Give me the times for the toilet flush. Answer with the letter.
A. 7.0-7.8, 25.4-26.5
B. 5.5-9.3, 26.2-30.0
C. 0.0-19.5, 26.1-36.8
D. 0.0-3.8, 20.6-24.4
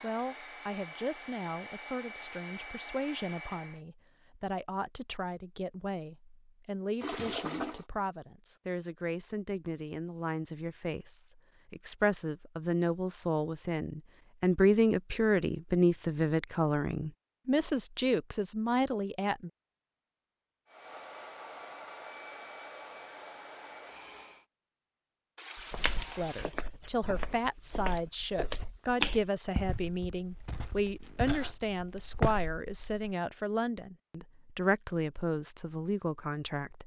A.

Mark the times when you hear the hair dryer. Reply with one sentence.
You can hear the hair dryer from 0.0 to 3.8 s and from 20.6 to 24.4 s.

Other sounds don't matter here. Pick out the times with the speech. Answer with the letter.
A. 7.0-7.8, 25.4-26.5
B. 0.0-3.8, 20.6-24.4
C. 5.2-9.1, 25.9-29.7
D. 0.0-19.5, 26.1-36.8
D.